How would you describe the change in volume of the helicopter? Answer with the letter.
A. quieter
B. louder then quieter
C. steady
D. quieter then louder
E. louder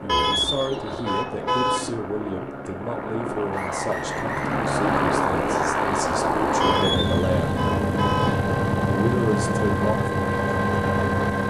E.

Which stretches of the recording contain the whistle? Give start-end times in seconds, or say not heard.
3.5-4.6.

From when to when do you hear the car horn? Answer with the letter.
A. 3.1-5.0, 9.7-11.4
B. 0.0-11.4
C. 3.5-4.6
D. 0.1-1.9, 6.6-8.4
D.